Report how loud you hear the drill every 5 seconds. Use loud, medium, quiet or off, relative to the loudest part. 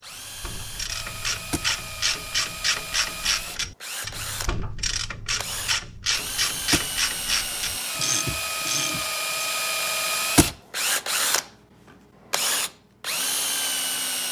medium, loud, loud.